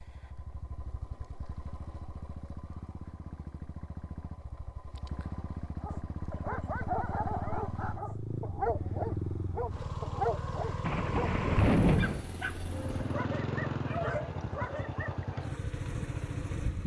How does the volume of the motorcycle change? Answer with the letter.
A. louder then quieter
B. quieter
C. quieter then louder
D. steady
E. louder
E.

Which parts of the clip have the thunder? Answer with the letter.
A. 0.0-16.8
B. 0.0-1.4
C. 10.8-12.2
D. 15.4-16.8
C.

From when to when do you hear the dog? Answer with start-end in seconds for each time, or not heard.
5.8-15.2.